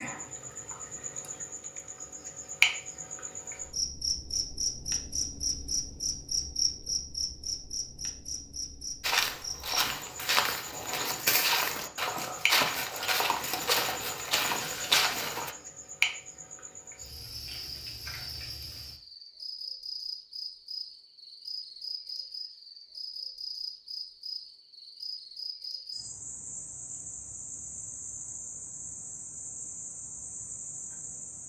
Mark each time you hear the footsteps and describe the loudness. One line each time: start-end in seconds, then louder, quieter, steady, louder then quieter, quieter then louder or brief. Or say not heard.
9.0-15.6 steady.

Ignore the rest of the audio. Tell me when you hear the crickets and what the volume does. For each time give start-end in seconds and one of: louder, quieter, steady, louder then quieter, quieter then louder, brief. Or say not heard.
0.0-31.4 quieter.